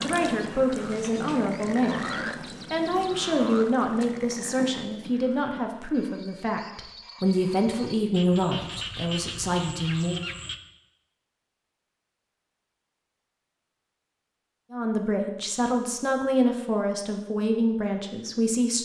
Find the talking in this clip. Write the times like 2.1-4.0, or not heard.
0.0-10.2, 14.7-18.8.